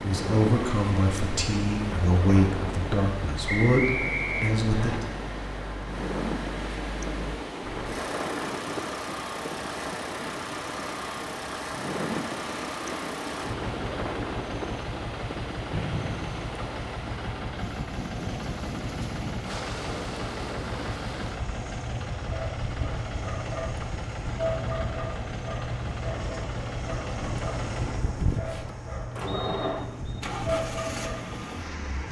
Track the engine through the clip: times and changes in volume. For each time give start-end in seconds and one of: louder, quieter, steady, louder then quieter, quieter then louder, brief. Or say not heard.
0.0-32.0 steady.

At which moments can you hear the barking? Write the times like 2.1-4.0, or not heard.
21.9-31.4.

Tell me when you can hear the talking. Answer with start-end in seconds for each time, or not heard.
0.0-5.0.